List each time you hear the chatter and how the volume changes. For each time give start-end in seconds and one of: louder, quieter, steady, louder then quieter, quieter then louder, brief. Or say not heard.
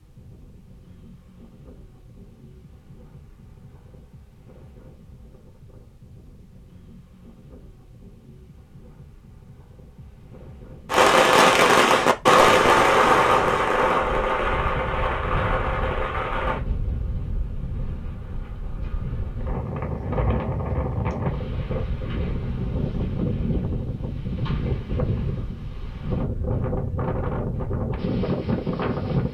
not heard.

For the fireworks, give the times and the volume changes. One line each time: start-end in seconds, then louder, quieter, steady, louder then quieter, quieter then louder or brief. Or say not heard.
10.9-16.6 quieter.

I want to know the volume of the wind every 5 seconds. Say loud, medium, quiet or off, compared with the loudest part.
quiet, quiet, quiet, medium, loud, loud.